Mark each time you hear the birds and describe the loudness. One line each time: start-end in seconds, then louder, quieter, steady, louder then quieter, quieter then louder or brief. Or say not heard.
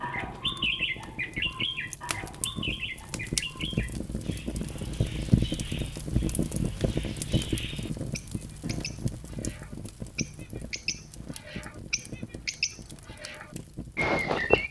0.0-14.6 quieter then louder.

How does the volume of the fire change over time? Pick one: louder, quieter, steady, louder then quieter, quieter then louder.
louder then quieter.